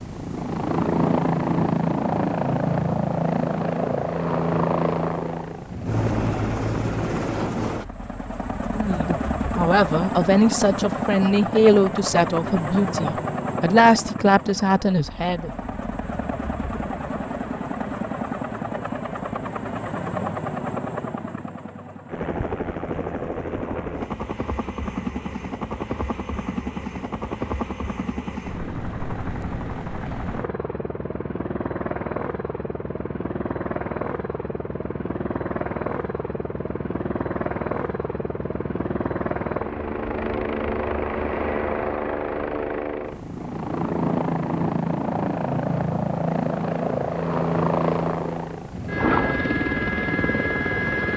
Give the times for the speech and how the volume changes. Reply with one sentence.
The speech can be heard from 8.7 to 15.5 s, at a steady volume.